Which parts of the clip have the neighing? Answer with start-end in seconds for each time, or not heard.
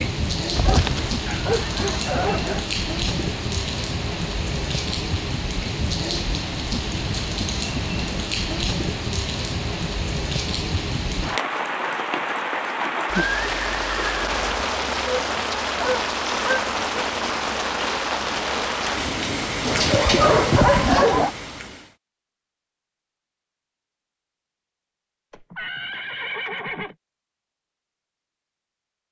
0.6-1.1, 13.1-14.4, 25.3-26.9.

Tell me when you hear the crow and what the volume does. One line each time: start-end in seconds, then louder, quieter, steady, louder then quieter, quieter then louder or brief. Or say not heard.
not heard.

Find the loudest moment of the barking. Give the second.
21 s.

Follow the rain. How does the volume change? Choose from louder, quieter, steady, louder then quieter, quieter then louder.
steady.